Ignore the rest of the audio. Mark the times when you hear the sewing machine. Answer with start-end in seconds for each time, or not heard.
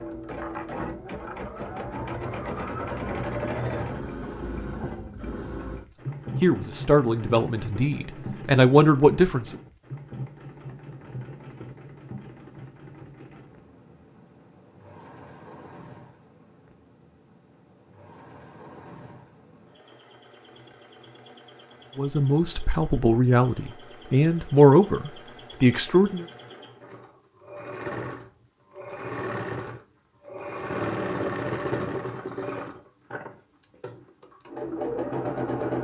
0.0-35.7.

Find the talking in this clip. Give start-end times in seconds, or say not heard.
6.3-9.6, 21.9-26.2.